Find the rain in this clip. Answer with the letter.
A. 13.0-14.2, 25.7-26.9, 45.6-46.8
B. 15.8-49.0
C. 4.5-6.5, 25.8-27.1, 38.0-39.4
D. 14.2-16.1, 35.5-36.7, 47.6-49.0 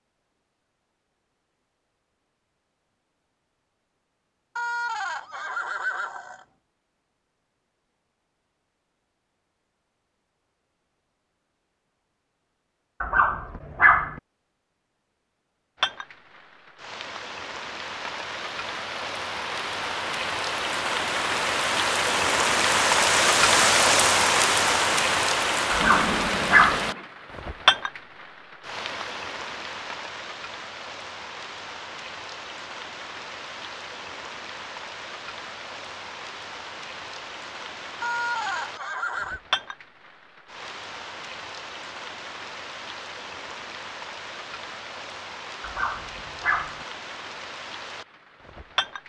B.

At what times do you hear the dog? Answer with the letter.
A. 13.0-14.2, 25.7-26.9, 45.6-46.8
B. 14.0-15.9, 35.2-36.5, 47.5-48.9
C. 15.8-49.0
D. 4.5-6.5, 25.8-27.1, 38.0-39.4
A.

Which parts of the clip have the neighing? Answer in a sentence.
You can hear the neighing from 4.5 to 6.5 s, from 25.8 to 27.1 s and from 38.0 to 39.4 s.